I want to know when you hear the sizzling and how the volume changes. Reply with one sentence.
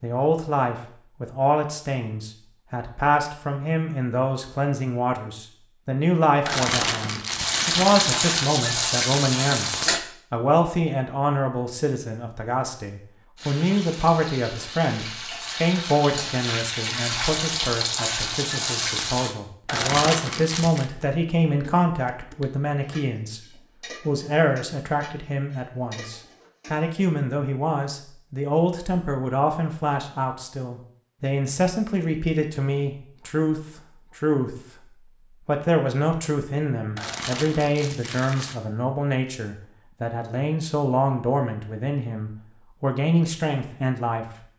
The sizzling can be heard briefly from 7.3 to 10.1 s; and from 13.3 to 19.4 s, getting louder.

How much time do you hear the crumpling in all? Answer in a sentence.
You can hear the crumpling for 5 seconds altogether.